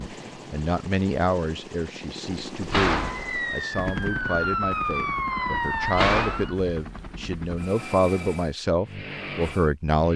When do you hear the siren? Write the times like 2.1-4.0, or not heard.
3.0-6.5.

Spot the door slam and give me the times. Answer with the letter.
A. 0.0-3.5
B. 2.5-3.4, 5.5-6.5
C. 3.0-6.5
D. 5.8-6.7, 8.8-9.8
B.